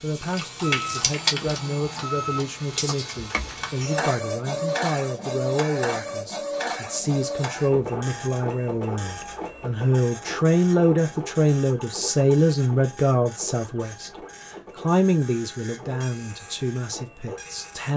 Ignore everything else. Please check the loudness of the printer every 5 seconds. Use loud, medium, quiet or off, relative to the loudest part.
loud, loud, medium, quiet.